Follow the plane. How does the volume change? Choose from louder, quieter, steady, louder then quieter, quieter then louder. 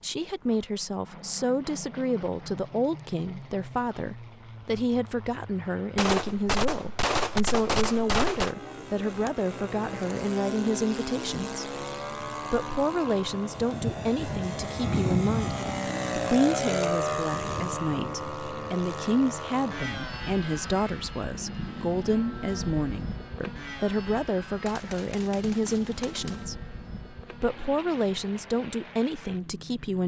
louder then quieter.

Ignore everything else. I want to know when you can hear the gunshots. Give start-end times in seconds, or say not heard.
6.0-8.6, 24.6-26.4.